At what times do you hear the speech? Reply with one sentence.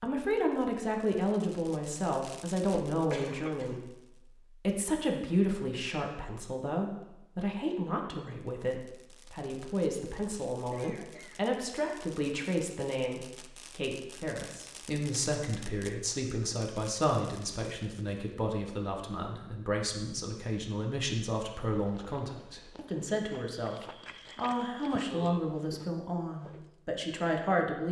The speech can be heard from 0.0 to 27.8 s.